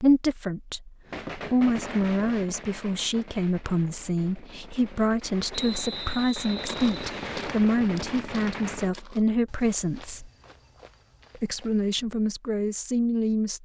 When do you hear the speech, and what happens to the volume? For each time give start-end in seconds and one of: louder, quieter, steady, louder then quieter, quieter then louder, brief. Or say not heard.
0.0-10.3 steady
11.3-13.5 brief.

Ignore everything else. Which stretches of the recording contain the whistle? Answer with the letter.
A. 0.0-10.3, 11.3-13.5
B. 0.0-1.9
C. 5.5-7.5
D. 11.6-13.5
C.